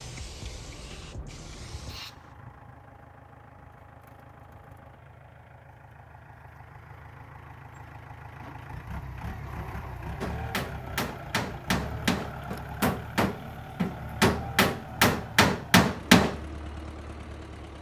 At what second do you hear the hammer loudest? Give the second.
16 s.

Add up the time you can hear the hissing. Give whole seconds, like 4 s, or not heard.
2 s.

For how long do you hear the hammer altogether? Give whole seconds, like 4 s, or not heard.
6 s.